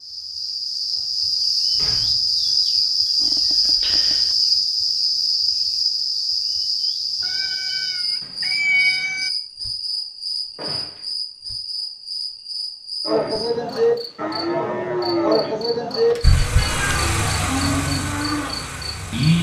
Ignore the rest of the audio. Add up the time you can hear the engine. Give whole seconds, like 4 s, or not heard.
3 s.